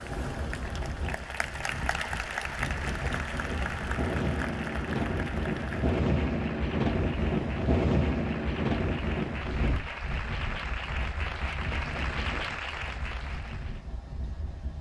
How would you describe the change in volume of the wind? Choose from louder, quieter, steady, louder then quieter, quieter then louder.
louder then quieter.